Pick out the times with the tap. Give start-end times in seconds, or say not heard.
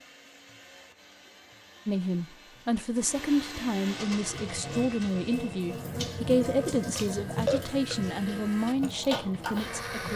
3.9-10.1.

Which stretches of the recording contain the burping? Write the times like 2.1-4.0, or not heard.
6.5-8.2.